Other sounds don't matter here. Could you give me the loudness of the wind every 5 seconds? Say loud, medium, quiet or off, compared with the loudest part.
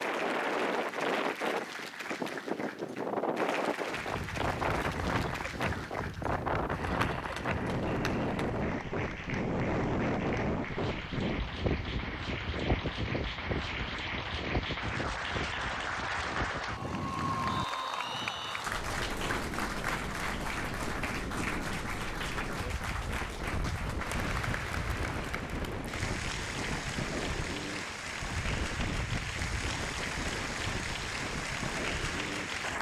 loud, loud, loud, medium, medium, medium, medium.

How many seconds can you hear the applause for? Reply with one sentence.
You can hear the applause for 33 seconds altogether.